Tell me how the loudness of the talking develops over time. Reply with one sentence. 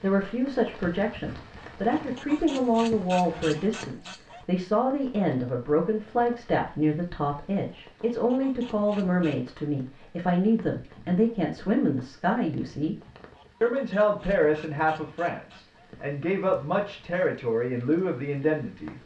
The volume of the talking stays about the same.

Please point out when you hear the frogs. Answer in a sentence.
You can't hear the frogs here.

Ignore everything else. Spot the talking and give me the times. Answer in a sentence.
You can hear the talking from 0.0 to 12.9 s and from 13.6 to 18.9 s.